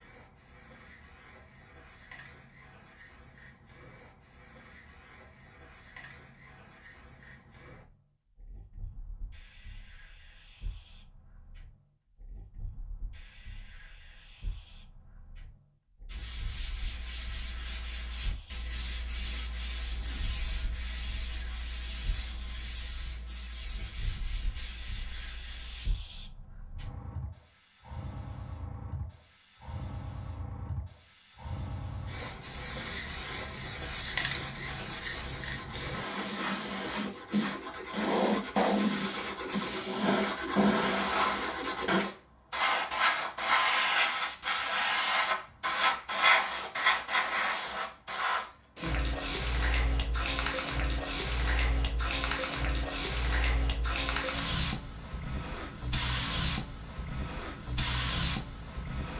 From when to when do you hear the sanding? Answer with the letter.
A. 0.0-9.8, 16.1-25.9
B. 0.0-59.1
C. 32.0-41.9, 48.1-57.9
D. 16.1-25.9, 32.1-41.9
D.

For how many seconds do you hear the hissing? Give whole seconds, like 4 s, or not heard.
59 s.